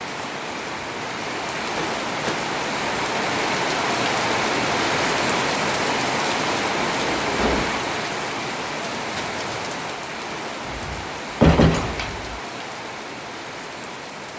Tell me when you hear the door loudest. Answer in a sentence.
The volume of the door peaks at 12 seconds.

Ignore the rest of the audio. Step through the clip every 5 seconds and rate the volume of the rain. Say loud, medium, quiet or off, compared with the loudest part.
loud, loud, medium.